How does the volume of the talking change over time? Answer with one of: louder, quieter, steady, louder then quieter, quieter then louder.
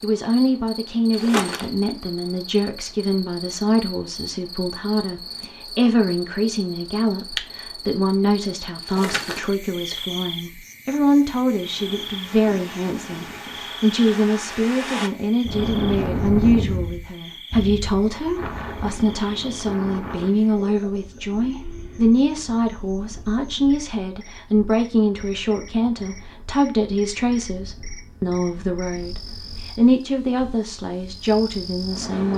steady.